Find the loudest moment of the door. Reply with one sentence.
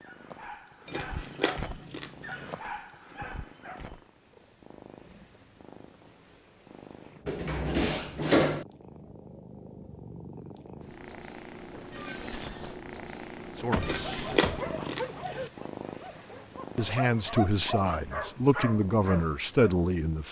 The loudest moment of the door is at 8 seconds.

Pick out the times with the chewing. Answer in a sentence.
You can hear the chewing from 0.8 to 2.5 s and from 13.8 to 15.5 s.